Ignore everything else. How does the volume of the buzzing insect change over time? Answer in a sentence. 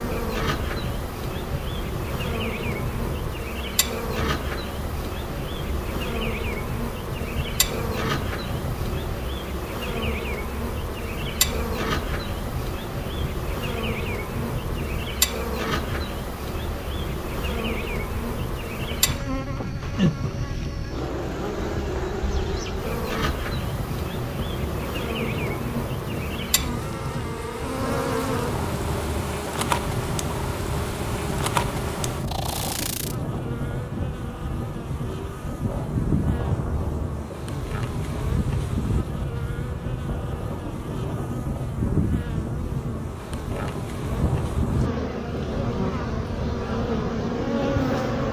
The volume of the buzzing insect stays about the same.